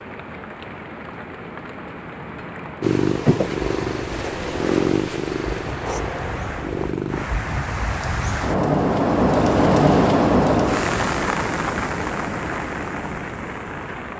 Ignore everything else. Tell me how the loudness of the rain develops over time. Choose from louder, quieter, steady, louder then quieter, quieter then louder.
louder then quieter.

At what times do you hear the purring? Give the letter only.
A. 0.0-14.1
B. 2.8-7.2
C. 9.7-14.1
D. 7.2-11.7
B.